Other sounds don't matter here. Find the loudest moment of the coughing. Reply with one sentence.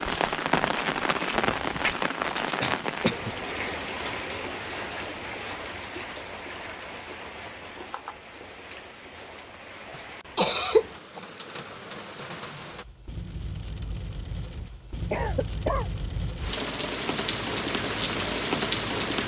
The volume of the coughing peaks at 11 seconds.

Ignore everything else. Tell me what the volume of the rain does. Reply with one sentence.
The volume of the rain goes down, then up.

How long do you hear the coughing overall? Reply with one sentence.
The coughing can be heard for 2 seconds in total.